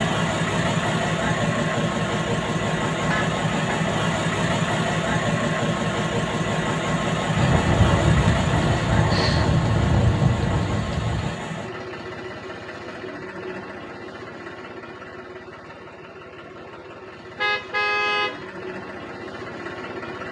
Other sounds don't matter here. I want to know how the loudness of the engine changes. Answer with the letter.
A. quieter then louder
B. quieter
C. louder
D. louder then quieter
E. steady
B.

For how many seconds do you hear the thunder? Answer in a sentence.
You can hear the thunder for 4 seconds altogether.